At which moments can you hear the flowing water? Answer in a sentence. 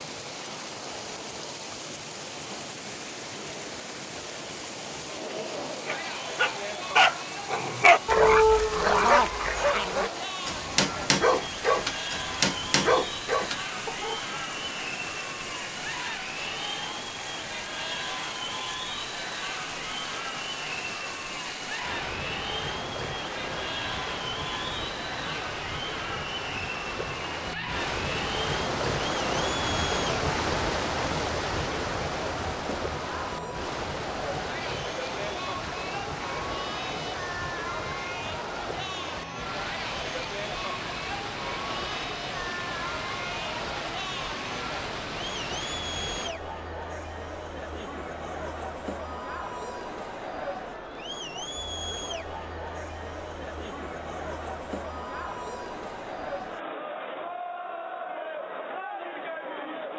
You can hear the flowing water from 0.0 to 46.4 s.